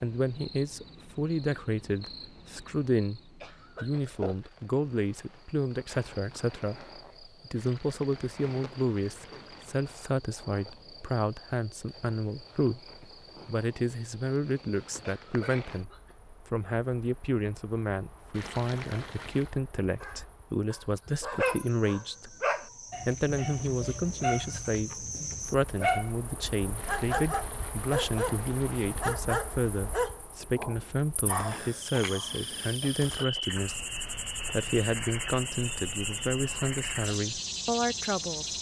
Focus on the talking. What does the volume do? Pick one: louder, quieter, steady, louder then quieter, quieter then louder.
steady.